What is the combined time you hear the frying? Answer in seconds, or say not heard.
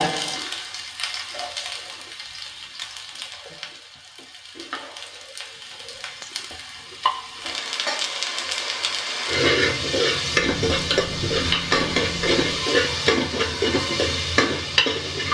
15 s.